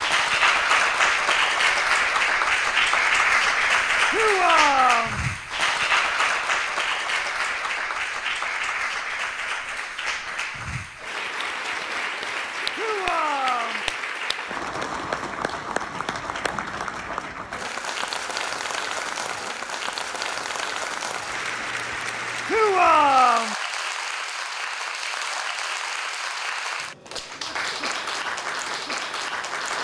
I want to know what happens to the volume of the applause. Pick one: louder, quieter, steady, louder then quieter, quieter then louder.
quieter.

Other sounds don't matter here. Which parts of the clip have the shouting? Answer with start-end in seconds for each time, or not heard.
4.1-5.2, 12.8-13.8, 22.4-23.6.